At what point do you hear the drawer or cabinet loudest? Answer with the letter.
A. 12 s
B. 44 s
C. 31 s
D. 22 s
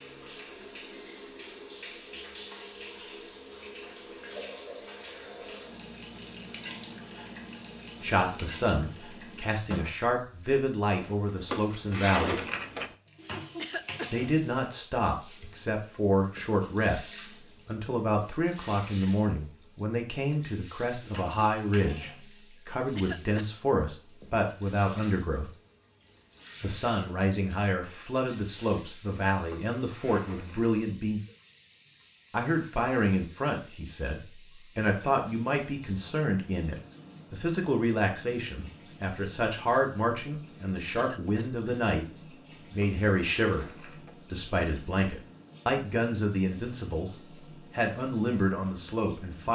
A.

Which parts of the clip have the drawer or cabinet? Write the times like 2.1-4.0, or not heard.
11.4-12.9, 29.5-30.7, 42.8-44.1.